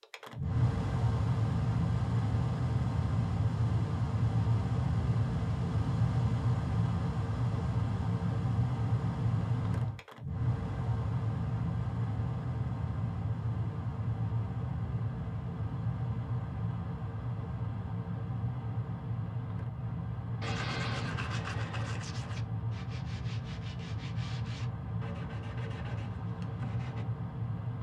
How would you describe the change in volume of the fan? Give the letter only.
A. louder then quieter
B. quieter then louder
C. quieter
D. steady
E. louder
C.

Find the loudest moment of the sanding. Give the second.
21 s.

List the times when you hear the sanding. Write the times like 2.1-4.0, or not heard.
20.4-27.1.